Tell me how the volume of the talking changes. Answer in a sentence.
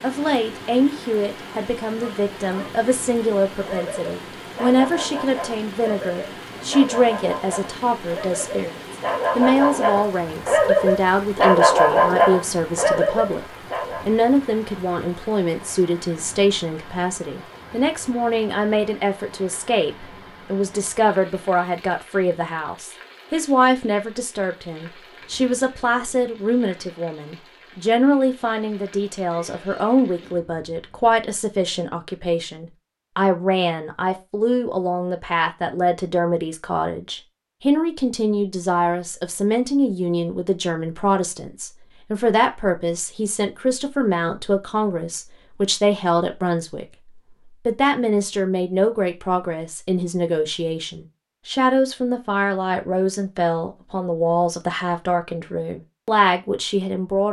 The volume of the talking stays about the same.